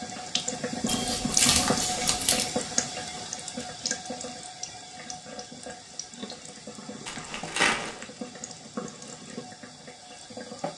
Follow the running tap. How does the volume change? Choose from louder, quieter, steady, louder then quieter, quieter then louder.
quieter.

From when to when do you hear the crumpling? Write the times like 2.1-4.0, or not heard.
0.8-2.5, 7.0-8.1.